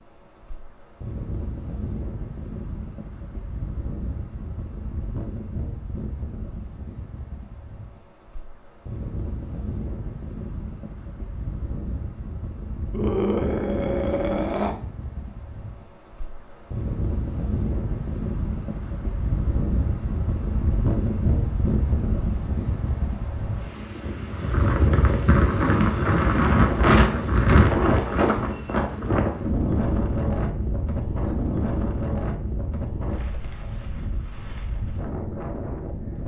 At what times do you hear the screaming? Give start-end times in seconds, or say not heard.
12.9-14.8.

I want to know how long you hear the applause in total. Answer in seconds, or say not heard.
not heard.